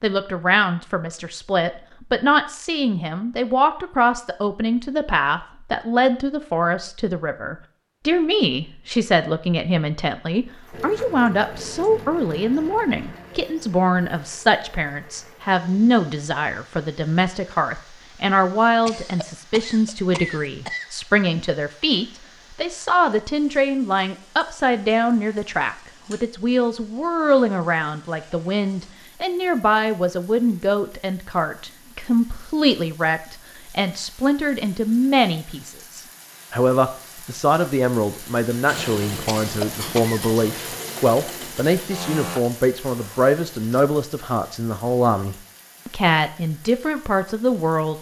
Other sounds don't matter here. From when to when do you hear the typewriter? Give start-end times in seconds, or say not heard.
not heard.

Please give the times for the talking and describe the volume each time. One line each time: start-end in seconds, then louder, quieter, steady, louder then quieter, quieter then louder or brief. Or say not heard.
0.0-47.9 steady.